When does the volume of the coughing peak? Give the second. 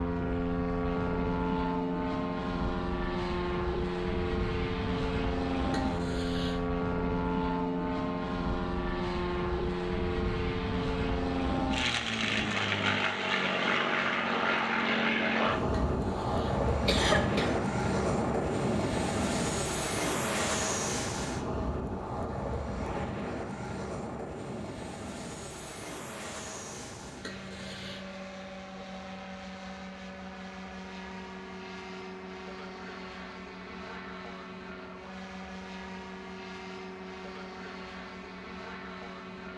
17 s.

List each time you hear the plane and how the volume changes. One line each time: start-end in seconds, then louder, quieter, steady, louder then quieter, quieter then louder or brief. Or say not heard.
0.0-39.5 quieter.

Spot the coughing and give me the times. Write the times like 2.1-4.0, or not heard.
5.7-6.7, 15.8-17.6, 27.2-28.1.